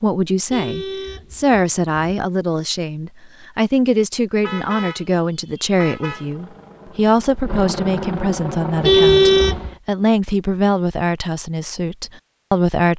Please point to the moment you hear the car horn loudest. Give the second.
9 s.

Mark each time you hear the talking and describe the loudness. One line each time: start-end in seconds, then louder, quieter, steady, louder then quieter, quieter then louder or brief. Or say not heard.
0.0-12.9 steady.